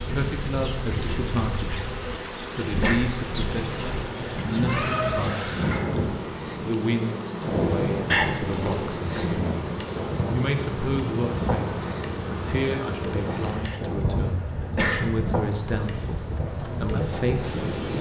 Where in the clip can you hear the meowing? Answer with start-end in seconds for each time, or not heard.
4.7-5.8.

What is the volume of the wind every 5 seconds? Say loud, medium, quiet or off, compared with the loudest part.
medium, loud, loud, loud.